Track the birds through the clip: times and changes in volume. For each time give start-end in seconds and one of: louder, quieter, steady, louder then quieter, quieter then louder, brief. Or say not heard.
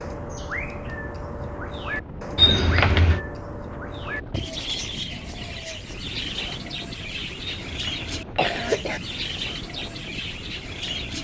0.0-11.1 steady.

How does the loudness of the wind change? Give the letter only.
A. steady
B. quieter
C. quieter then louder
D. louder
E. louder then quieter
A.